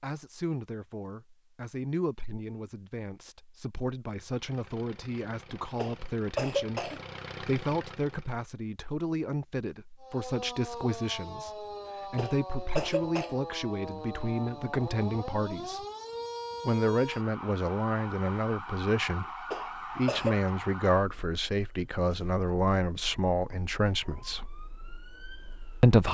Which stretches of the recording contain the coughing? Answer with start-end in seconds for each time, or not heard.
5.8-7.0, 12.2-13.3, 19.5-20.5.